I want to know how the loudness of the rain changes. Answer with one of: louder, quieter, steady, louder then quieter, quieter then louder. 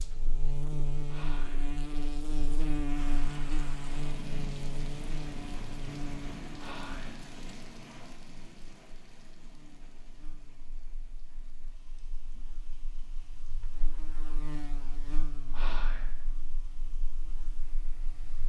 quieter.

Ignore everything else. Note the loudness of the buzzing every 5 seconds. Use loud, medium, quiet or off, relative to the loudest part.
loud, medium, quiet, quiet.